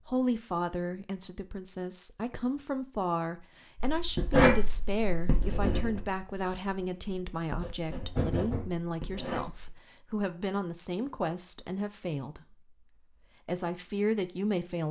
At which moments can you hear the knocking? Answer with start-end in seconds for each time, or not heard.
8.0-8.8.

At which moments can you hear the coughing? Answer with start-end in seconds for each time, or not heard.
not heard.